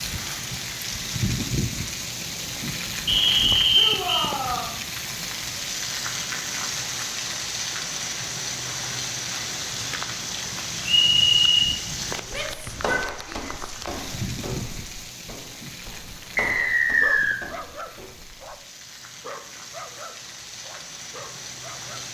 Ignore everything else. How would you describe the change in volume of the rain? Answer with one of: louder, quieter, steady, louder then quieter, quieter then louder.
quieter.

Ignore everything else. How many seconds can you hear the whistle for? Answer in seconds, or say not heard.
3 s.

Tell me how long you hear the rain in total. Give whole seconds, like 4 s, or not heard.
22 s.